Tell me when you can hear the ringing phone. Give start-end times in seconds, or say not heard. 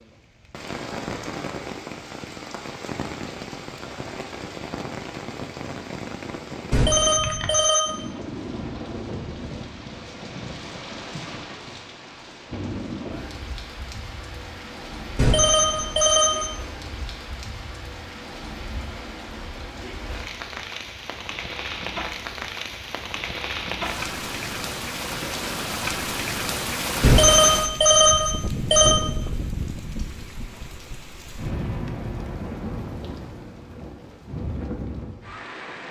6.7-8.0, 15.2-16.5, 27.0-29.0.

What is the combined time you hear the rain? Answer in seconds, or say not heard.
36 s.